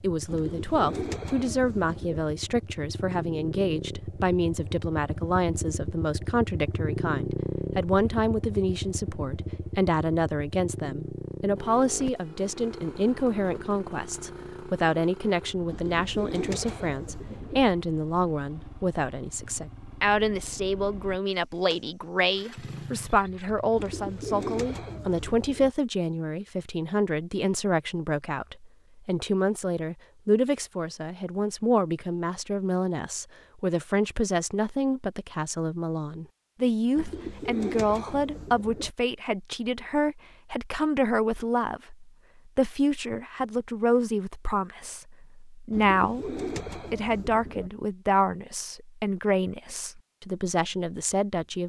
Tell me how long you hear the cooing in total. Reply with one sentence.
You can hear the cooing for 10 seconds altogether.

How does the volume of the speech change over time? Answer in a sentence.
The loudness of the speech stays about the same.